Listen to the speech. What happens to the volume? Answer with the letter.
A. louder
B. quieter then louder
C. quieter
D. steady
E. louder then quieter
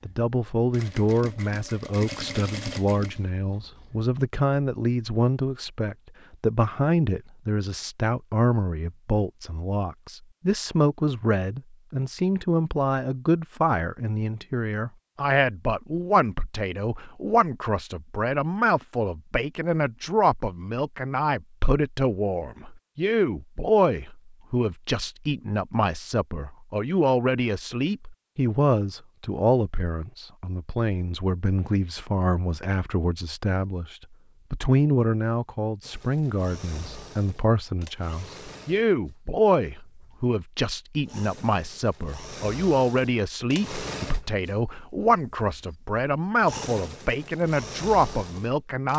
D.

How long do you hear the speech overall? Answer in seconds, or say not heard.
49 s.